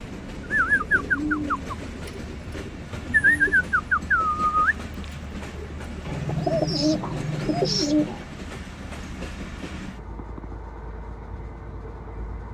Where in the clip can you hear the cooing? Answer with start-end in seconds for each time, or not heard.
0.5-8.2.